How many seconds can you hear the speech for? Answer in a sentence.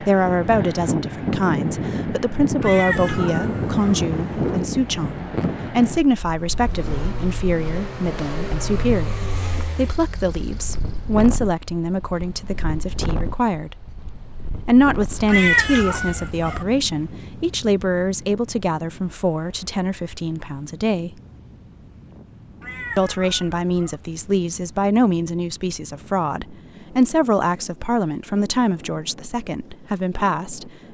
The speech can be heard for 28 seconds in total.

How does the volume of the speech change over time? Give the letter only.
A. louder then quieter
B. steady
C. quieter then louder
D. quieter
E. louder
B.